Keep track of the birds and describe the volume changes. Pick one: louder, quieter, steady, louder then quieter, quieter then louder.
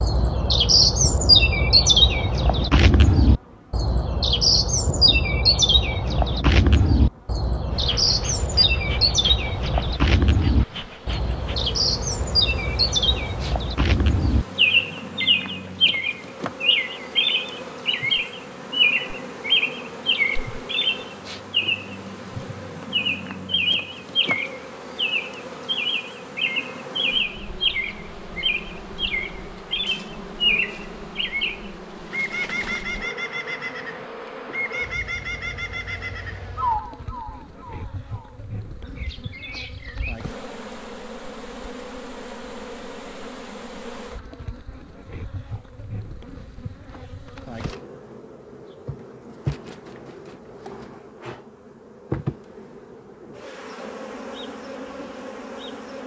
quieter.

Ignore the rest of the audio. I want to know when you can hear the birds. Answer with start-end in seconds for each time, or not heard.
0.0-40.1.